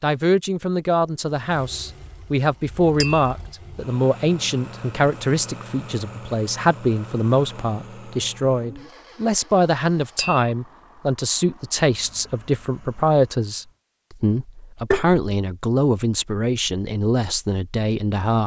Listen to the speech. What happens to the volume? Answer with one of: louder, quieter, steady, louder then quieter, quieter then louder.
steady.